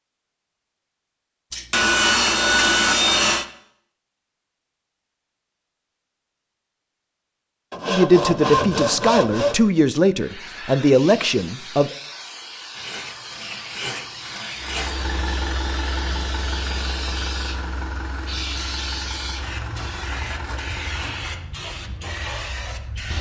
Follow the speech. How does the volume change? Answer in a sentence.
The volume of the speech stays about the same.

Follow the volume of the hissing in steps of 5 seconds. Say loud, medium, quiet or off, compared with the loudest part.
off, off, loud, loud, loud.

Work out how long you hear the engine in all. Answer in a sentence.
You can hear the engine for 7 seconds altogether.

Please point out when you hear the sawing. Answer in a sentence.
The sawing can be heard from 1.5 to 3.5 s, from 7.7 to 9.6 s, from 12.8 to 14.9 s and from 19.6 to 21.3 s.